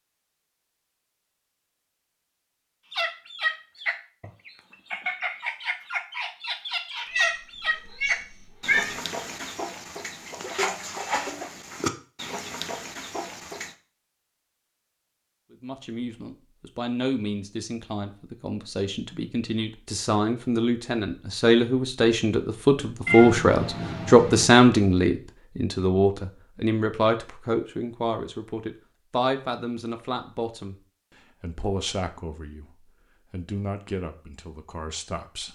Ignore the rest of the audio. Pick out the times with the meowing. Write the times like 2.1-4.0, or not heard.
7.0-8.9, 23.1-24.4.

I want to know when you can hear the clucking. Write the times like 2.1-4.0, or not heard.
2.9-13.8.